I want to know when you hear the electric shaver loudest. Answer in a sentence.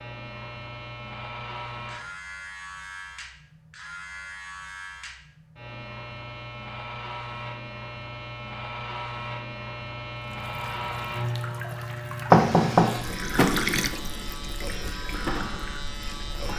The loudest moment of the electric shaver is at 11 seconds.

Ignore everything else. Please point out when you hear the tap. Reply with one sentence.
The tap can be heard from 10.2 to 16.5 s.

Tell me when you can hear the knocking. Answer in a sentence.
You can hear the knocking from 12.3 to 12.9 s.